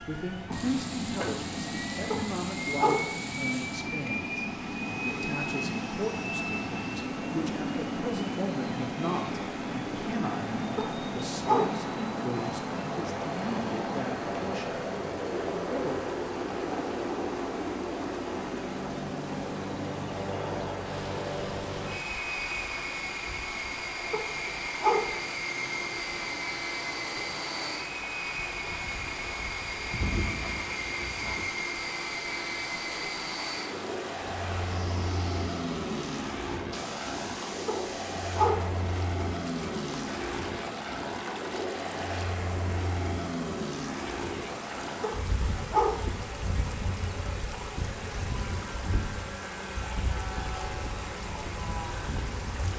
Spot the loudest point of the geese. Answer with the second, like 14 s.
30 s.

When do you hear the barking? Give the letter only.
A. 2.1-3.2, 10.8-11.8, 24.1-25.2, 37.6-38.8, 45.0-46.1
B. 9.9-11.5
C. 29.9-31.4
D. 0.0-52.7
A.